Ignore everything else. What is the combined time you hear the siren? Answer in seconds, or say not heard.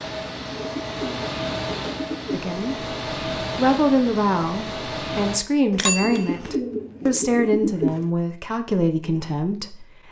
not heard.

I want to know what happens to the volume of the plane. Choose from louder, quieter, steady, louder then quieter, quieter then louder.
steady.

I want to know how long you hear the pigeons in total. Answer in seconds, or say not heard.
5 s.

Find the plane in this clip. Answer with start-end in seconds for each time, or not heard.
0.0-5.5.